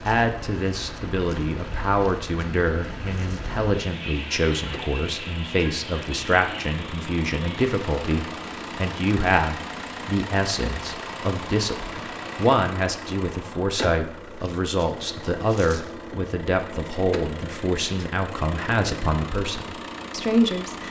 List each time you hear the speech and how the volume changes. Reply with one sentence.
You can hear the speech from 0.0 to 20.8 s, at a steady volume.